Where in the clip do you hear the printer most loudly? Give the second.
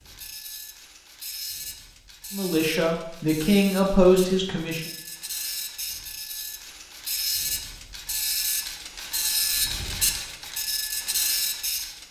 10 s.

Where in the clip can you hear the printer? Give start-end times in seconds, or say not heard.
0.0-12.0.